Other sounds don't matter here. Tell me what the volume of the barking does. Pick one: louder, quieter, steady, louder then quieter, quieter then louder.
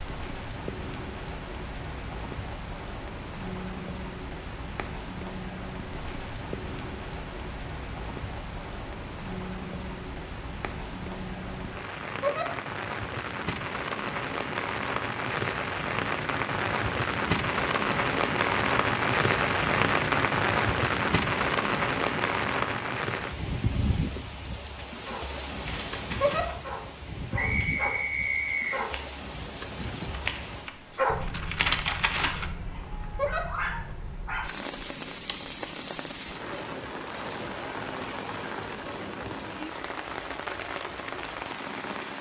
louder then quieter.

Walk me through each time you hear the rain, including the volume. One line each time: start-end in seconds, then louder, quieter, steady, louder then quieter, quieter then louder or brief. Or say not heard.
0.0-42.1 louder then quieter.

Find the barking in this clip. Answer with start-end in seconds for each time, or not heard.
25.0-34.7.